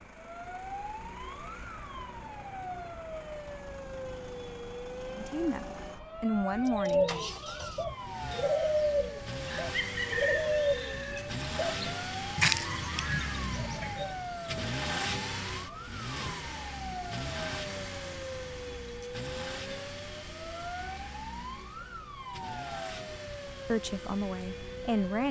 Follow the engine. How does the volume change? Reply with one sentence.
The loudness of the engine goes up, then down.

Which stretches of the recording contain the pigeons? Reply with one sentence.
The pigeons can be heard from 6.7 to 14.2 s.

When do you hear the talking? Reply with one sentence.
The talking can be heard from 5.2 to 7.3 s and from 23.6 to 25.2 s.